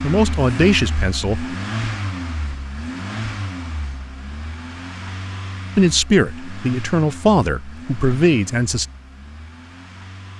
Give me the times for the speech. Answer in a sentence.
The speech can be heard from 0.0 to 1.6 s and from 5.8 to 8.8 s.